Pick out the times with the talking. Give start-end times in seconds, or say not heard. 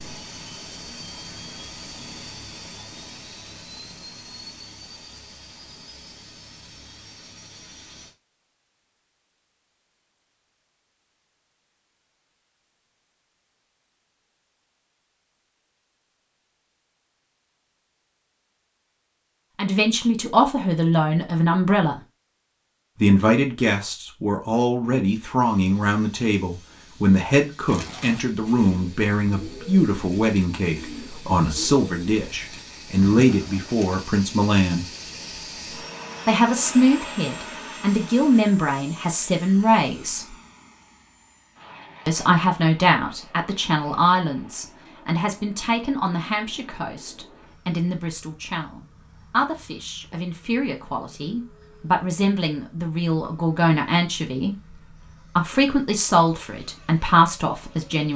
19.6-22.0, 23.0-34.9, 36.2-40.4, 42.0-58.1.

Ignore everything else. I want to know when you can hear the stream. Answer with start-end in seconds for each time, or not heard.
not heard.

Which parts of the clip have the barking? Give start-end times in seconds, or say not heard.
not heard.